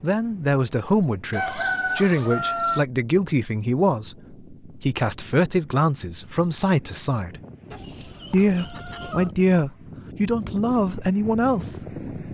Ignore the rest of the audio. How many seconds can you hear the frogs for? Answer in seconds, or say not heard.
not heard.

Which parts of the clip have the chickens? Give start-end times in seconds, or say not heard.
1.3-2.9, 7.7-9.3.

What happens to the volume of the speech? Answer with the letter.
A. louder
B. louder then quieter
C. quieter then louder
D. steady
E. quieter
D.